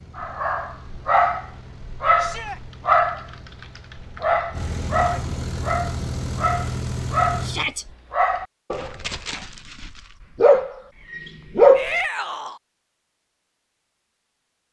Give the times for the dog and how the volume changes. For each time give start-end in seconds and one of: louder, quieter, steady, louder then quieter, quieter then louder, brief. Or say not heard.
0.1-11.9 steady.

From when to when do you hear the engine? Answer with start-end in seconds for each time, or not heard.
0.0-7.8.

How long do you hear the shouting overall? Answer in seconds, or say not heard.
2 s.